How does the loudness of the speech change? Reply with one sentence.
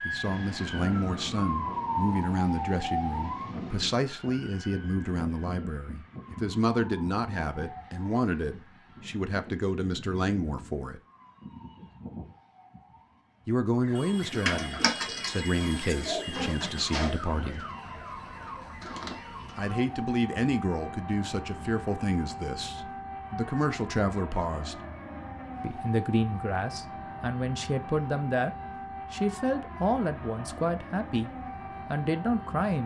The volume of the speech stays about the same.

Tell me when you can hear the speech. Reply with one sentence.
You can hear the speech from 0.1 to 11.0 s, from 13.4 to 17.6 s, from 19.6 to 24.8 s and from 25.6 to 32.8 s.